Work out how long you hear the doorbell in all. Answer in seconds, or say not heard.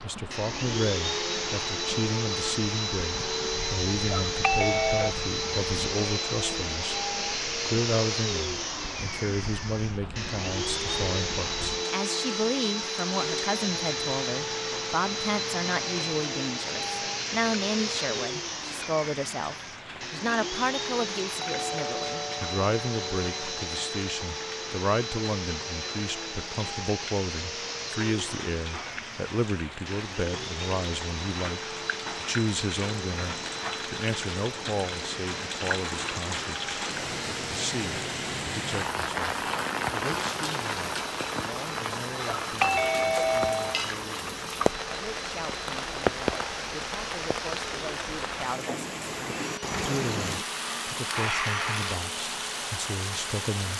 5 s.